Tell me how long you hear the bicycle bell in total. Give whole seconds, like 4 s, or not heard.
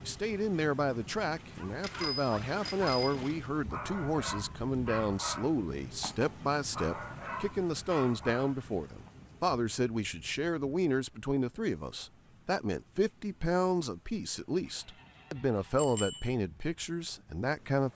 2 s.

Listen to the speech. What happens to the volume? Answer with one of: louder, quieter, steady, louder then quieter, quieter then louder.
steady.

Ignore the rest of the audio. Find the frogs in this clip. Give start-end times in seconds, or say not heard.
not heard.